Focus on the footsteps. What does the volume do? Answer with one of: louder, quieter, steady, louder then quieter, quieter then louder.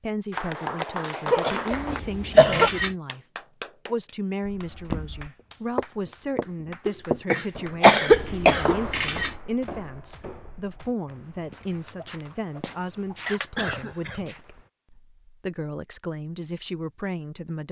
quieter.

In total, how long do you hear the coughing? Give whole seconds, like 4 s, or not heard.
4 s.